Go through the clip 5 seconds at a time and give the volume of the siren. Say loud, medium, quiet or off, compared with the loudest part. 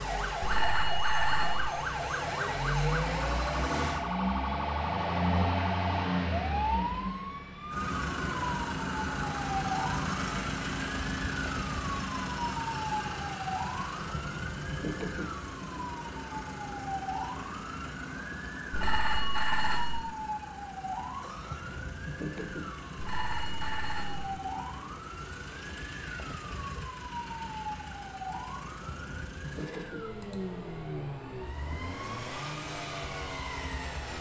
loud, loud, loud, medium, medium, medium, medium.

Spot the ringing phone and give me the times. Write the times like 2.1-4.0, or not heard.
0.4-1.7, 18.7-20.0, 22.9-24.2.